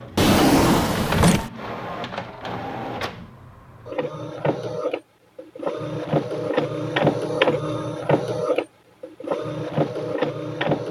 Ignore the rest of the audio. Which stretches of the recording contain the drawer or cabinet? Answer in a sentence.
The drawer or cabinet can be heard from 0.1 to 1.5 s.